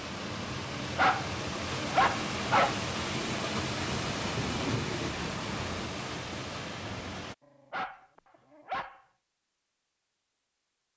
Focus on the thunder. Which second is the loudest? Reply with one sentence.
The loudest moment of the thunder is at 5 seconds.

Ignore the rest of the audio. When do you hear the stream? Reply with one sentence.
The stream can be heard from 0.0 to 7.3 s.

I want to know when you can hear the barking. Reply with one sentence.
The barking can be heard from 0.8 to 2.9 s and from 7.5 to 9.0 s.